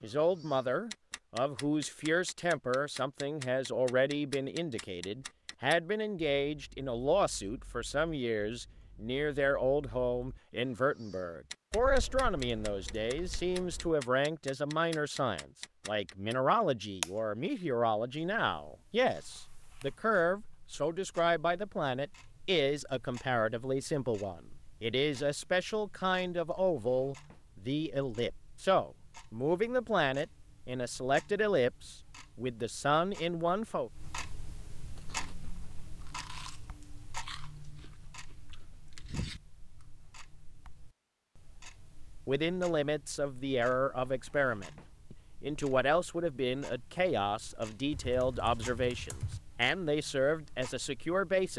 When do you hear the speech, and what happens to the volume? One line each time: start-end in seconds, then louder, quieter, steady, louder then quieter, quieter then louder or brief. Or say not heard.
0.0-33.9 steady
42.2-51.5 steady.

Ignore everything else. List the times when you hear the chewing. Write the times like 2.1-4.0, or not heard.
35.0-39.4.